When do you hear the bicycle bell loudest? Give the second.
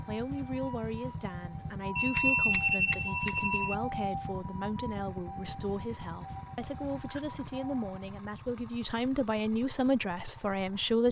3 s.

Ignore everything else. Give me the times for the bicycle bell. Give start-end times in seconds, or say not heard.
1.9-3.8, 6.6-7.4.